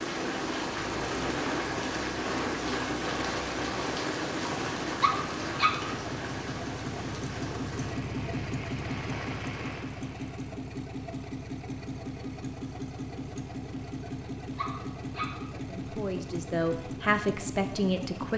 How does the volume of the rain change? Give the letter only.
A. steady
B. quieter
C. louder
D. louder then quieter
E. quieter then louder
B.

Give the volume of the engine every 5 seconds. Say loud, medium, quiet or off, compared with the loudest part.
medium, loud, loud, loud.